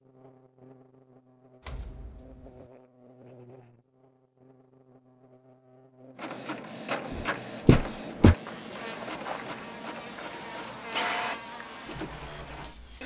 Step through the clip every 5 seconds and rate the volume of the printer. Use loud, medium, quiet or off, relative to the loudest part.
off, loud, loud.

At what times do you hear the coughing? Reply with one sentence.
The coughing can't be heard in this clip.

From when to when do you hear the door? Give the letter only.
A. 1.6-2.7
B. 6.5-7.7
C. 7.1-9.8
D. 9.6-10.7
A.